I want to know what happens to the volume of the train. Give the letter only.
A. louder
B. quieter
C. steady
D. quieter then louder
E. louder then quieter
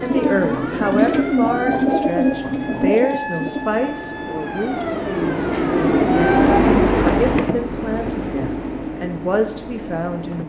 E.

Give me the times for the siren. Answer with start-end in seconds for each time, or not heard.
0.0-6.6.